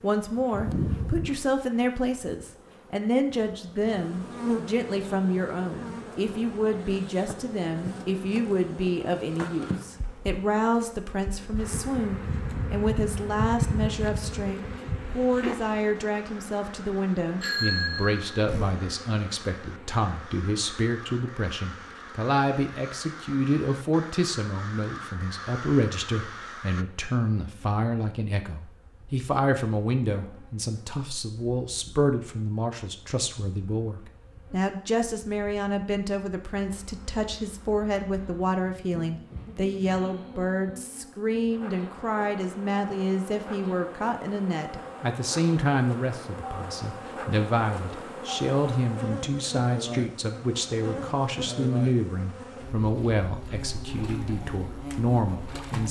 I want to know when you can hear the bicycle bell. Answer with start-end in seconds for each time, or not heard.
17.4-18.8.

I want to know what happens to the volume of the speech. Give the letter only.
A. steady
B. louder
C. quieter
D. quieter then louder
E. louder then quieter
A.